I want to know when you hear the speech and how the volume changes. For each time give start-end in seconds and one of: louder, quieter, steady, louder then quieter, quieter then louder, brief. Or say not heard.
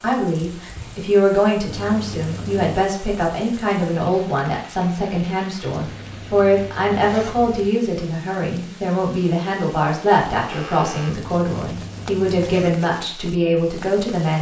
0.0-14.3 steady.